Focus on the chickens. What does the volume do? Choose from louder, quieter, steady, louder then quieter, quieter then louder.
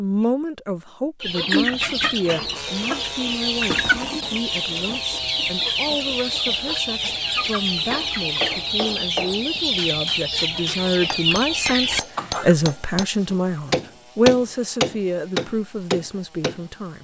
steady.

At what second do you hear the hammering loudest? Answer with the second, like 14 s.
14 s.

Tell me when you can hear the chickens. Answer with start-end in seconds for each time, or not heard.
1.2-12.6.